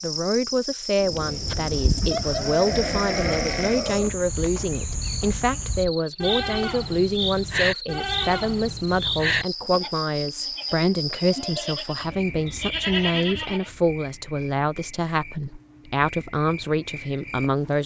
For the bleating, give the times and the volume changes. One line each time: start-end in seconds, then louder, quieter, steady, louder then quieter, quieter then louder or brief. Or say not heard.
1.2-13.7 quieter then louder.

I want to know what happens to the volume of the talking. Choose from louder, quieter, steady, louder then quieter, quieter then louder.
steady.